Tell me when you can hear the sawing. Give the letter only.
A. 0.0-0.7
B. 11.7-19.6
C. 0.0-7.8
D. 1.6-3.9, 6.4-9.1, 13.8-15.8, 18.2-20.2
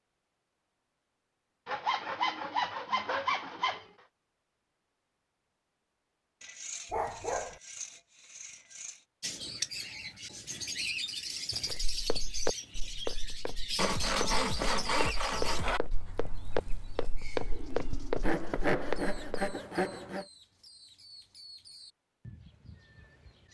D.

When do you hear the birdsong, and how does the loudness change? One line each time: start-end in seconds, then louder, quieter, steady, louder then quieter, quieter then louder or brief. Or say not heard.
9.2-23.4 quieter.